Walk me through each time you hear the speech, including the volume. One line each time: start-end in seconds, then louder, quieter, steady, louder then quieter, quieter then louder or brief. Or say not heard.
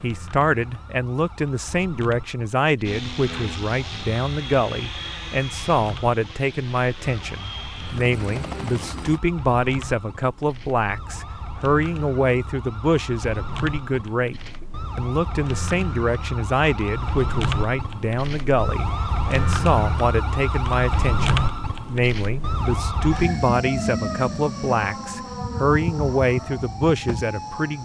0.0-27.7 steady.